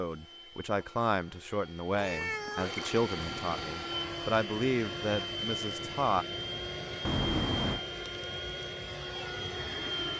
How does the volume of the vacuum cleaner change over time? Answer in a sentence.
The volume of the vacuum cleaner goes up.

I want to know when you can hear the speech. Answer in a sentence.
The speech can be heard from 0.0 to 6.2 s.